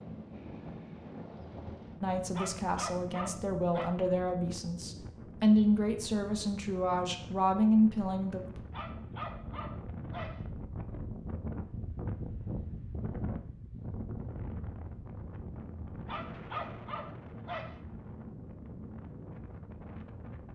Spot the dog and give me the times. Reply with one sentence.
You can hear the dog from 2.4 to 3.9 s, from 8.7 to 10.4 s and from 16.1 to 17.8 s.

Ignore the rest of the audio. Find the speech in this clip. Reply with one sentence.
You can hear the speech from 2.0 to 8.6 s.